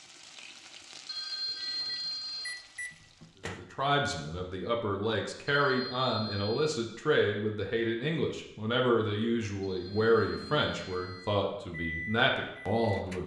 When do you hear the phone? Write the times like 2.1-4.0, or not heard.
1.1-2.6, 5.5-6.7, 9.6-11.4.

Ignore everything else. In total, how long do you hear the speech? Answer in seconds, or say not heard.
10 s.